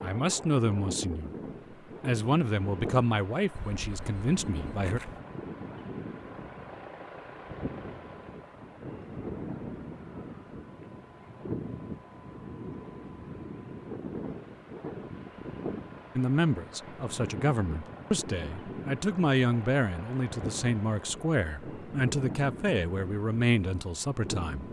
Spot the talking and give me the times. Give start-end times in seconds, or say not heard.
0.0-1.3, 2.0-5.0, 16.1-24.6.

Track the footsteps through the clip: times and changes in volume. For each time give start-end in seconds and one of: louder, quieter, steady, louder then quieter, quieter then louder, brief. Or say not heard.
not heard.